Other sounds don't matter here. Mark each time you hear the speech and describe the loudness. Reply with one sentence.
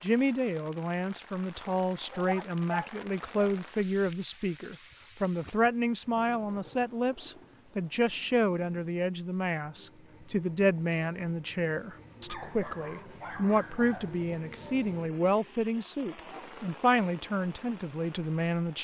You can hear the speech from 0.0 to 18.8 s, at a steady volume.